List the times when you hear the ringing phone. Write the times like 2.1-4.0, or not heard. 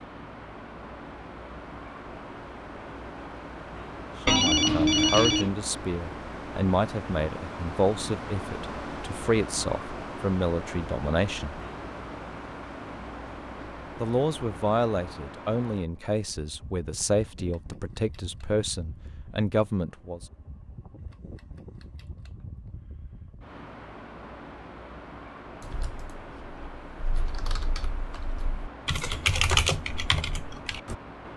4.2-5.5.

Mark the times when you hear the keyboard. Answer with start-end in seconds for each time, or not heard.
25.6-30.9.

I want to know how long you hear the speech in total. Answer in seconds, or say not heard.
14 s.